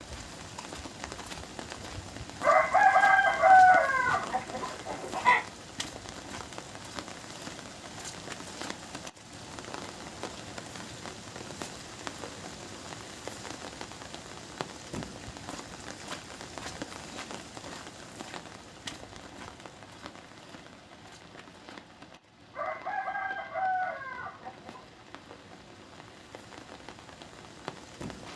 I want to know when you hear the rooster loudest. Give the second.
4 s.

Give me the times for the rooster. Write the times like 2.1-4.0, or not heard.
2.4-5.4, 22.5-24.9.